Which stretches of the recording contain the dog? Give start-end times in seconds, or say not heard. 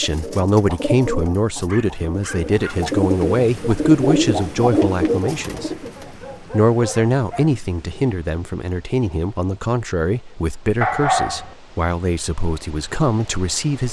1.6-2.9, 6.0-7.6, 10.8-11.6.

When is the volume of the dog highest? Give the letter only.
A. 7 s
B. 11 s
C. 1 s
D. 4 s
B.